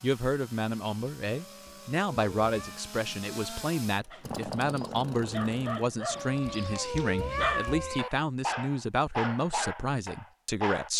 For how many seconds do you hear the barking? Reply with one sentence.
You can hear the barking for 7 seconds altogether.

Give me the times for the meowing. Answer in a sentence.
The meowing can be heard from 1.3 to 2.9 s and from 6.1 to 8.1 s.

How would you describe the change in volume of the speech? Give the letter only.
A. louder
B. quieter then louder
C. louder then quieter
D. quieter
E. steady
E.